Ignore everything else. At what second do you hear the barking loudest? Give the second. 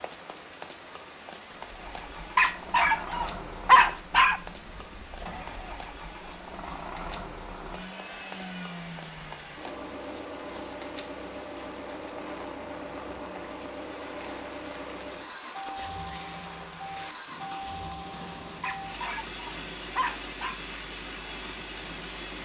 4 s.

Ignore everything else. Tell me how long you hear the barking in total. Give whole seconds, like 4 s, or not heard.
4 s.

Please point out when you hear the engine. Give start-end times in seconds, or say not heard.
1.5-22.4.